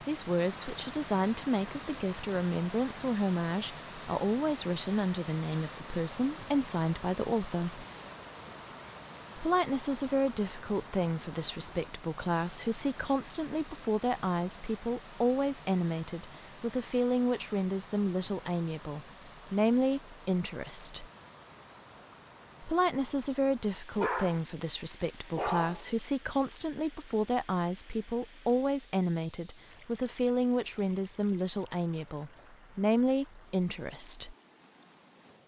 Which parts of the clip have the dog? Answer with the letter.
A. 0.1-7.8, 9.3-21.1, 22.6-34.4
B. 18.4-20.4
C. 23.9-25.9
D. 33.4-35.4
C.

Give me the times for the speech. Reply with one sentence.
The speech can be heard from 0.1 to 7.8 s, from 9.3 to 21.1 s and from 22.6 to 34.4 s.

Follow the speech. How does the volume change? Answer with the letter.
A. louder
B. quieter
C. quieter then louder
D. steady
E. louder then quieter
D.